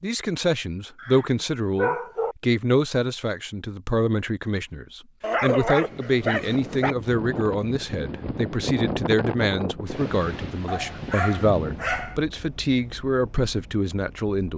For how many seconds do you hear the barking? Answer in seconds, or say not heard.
5 s.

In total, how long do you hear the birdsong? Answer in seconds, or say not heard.
not heard.